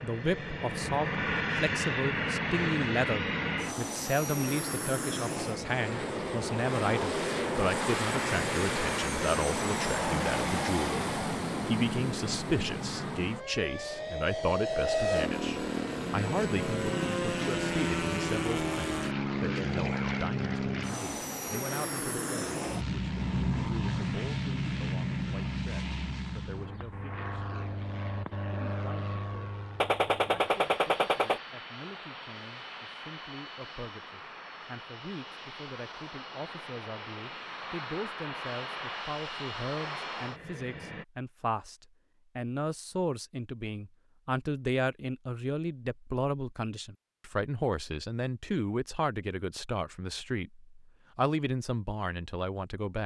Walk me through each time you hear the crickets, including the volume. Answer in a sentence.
You can't hear the crickets here.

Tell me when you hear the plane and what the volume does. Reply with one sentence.
You can hear the plane from 0.0 to 41.0 s, getting quieter.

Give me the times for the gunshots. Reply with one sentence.
The gunshots can be heard from 29.8 to 31.4 s.